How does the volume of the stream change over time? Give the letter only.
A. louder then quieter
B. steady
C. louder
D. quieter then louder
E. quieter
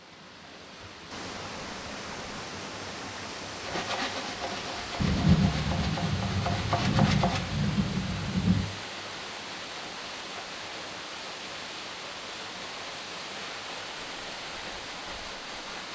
B.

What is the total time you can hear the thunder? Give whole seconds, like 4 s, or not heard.
4 s.